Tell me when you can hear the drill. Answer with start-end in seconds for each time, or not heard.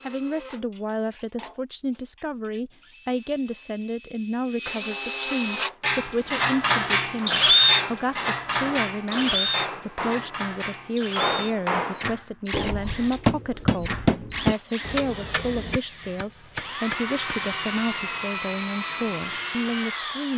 0.0-20.3.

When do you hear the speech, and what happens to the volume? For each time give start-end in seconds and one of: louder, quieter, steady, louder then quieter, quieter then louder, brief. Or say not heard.
0.0-20.3 steady.